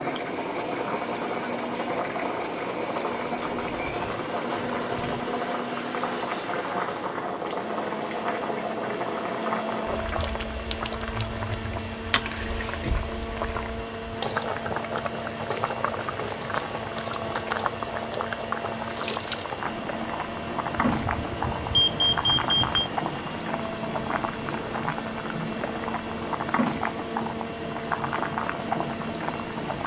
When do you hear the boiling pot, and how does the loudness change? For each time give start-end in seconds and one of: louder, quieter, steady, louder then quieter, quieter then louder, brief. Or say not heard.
0.0-29.8 steady.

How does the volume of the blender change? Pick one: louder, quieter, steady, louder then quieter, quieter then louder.
steady.